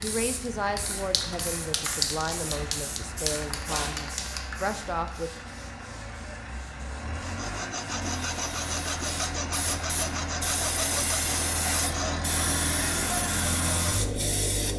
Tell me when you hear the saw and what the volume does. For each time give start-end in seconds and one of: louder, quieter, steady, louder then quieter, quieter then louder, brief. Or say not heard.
7.2-12.3 steady.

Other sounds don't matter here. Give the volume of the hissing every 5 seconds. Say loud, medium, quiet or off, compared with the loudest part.
loud, medium, loud.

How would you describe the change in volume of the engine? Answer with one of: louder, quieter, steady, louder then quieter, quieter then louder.
louder.